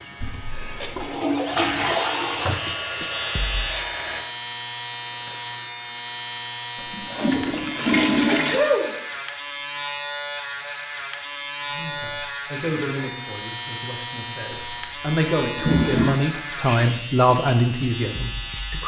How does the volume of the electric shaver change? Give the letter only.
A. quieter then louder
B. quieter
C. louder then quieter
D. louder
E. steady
E.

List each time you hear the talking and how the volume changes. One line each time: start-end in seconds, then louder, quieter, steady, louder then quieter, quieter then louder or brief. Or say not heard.
11.7-18.8 quieter then louder.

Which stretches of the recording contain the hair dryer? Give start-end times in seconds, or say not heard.
2.5-4.2.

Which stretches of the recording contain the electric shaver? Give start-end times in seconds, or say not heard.
0.0-18.8.